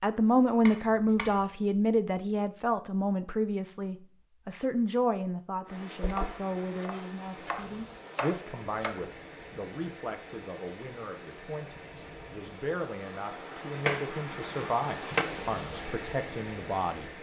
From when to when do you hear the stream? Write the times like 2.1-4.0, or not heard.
5.6-17.1.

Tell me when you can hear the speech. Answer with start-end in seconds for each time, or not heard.
0.0-17.1.